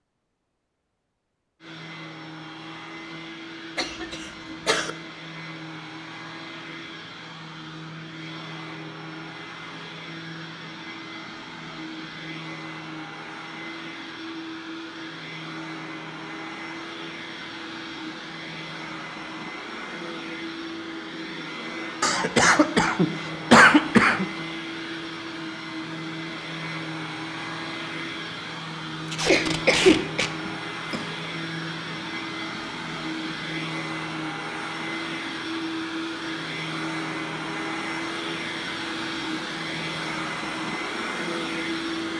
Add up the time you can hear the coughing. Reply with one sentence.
You can hear the coughing for 5 seconds altogether.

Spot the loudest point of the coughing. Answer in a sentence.
The volume of the coughing peaks at 24 seconds.